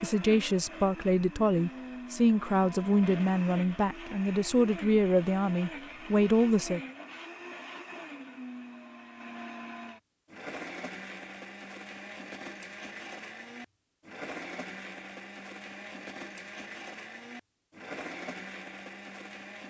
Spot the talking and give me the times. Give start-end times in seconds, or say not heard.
0.0-6.8.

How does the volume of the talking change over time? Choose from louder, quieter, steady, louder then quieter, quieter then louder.
steady.